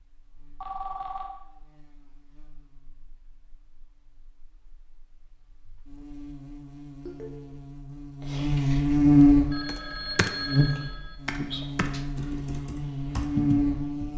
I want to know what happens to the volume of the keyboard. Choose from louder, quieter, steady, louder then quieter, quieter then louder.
quieter then louder.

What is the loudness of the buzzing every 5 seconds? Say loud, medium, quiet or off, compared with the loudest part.
quiet, loud, medium.